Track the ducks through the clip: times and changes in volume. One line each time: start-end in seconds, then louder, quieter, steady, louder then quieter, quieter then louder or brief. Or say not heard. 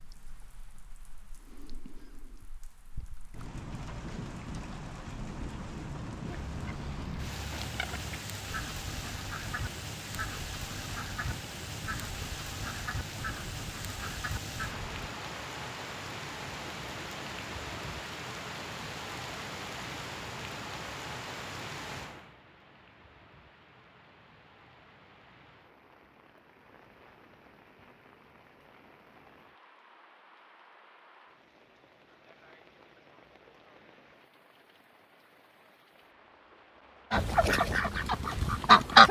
6.2-15.0 steady
37.1-39.0 brief.